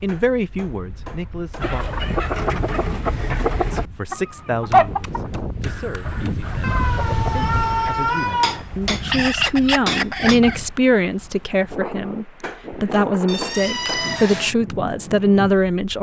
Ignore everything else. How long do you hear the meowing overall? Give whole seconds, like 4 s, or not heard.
4 s.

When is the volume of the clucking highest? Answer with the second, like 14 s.
5 s.